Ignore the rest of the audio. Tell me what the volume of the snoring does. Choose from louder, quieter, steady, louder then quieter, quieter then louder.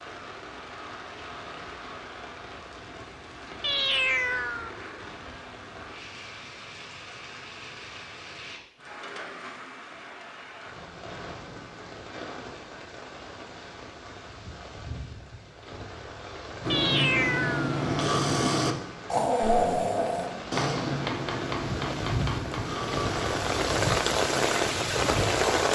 quieter.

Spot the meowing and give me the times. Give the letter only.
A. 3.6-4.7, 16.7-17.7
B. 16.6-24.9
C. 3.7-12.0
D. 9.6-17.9
A.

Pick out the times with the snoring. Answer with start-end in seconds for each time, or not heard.
16.6-24.9.